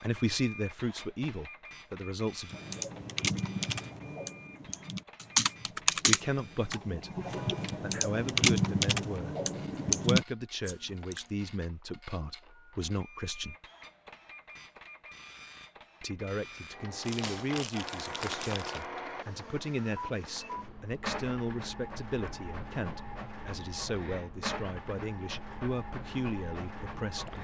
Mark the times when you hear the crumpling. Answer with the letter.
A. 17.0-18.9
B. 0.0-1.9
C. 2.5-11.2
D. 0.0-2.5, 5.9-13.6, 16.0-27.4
A.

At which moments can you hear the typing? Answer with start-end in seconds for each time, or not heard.
2.5-11.2.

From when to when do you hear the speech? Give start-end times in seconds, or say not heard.
0.0-2.5, 5.9-13.6, 16.0-27.4.